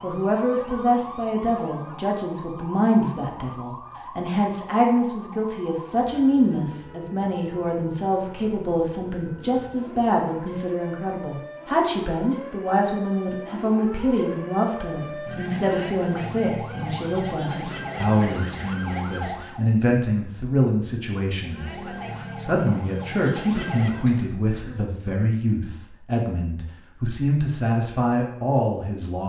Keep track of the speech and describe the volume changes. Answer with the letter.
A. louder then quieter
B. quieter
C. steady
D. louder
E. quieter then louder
C.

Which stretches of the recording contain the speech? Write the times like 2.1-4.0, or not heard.
0.0-29.2.